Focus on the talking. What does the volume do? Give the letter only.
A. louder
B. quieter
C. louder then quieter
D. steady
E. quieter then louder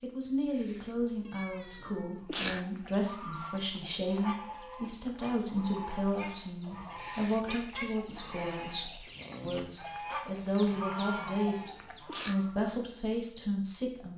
D.